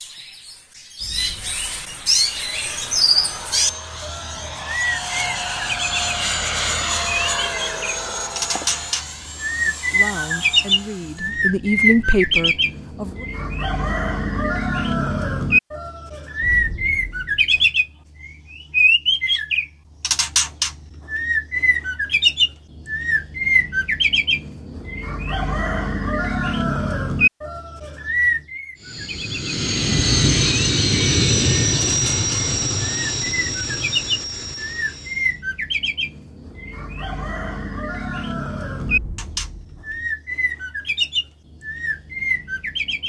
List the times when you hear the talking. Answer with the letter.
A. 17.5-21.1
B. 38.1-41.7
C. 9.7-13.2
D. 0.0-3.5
C.